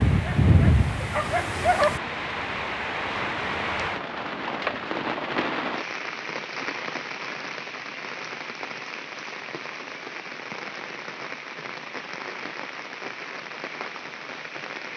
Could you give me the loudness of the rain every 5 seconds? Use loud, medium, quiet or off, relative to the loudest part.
loud, loud, medium.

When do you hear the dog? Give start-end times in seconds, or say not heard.
0.0-2.0.